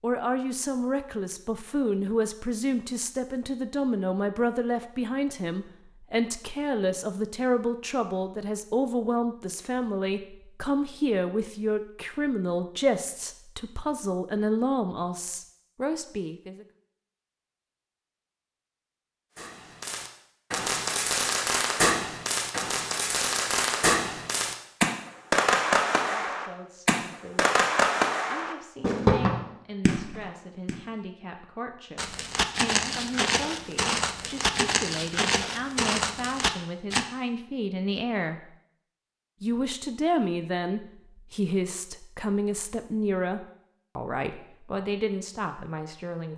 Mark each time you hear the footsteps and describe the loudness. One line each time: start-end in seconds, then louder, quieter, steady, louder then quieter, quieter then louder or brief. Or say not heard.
31.9-37.0 steady.